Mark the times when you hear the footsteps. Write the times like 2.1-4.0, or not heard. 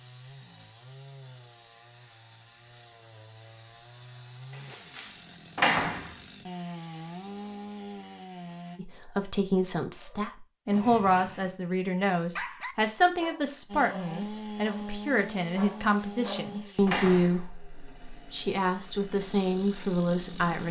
not heard.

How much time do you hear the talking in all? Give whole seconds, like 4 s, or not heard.
12 s.